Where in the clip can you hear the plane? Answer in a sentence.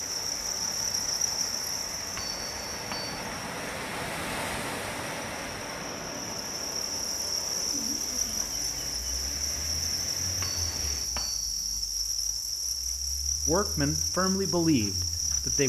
You can't hear the plane here.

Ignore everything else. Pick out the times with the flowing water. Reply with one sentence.
You can hear the flowing water from 0.0 to 11.2 s.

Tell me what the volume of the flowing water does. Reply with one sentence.
The loudness of the flowing water goes up, then down.